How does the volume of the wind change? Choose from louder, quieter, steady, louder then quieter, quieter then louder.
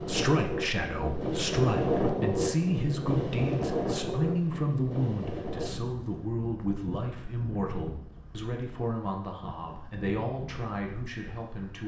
quieter.